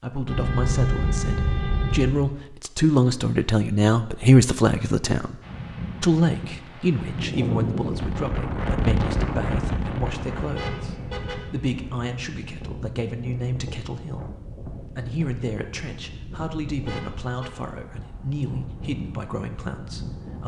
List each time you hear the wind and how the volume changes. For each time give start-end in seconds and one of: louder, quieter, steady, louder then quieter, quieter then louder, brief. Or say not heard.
5.4-20.4 quieter.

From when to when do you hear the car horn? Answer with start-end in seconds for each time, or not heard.
0.2-2.2, 10.6-11.4, 16.9-17.5.